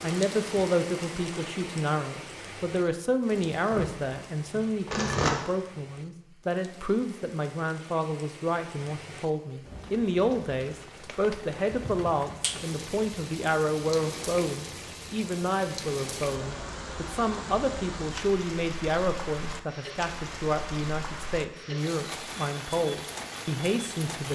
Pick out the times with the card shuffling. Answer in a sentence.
The card shuffling can be heard from 3.5 to 5.3 s.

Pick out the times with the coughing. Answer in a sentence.
The coughing can't be heard in this clip.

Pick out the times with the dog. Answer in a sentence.
You can't hear the dog here.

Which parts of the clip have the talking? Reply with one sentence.
You can hear the talking from 0.0 to 24.2 s.